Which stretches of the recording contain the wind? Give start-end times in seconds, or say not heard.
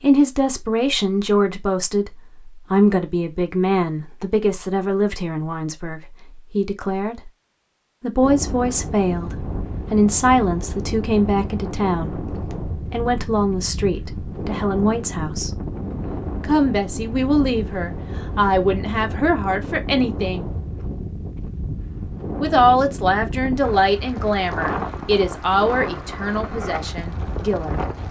8.2-28.0.